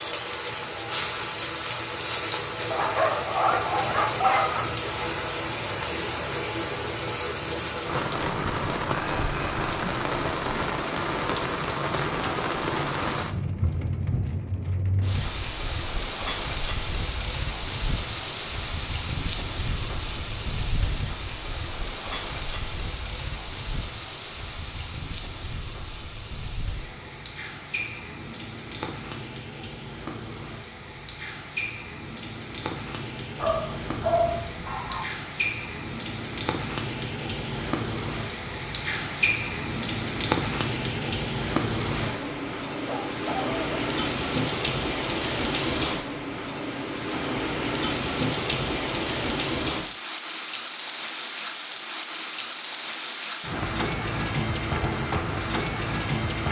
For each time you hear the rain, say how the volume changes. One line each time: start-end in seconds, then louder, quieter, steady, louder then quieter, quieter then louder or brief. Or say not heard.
0.0-56.4 quieter then louder.